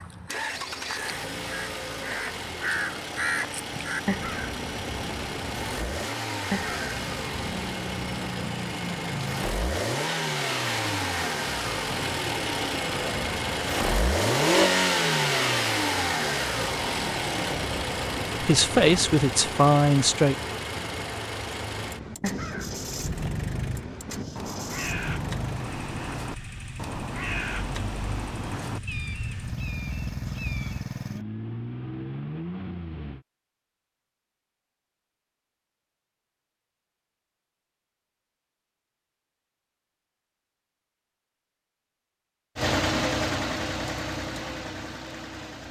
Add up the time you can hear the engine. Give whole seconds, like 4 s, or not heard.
36 s.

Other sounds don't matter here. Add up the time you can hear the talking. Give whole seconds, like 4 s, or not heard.
2 s.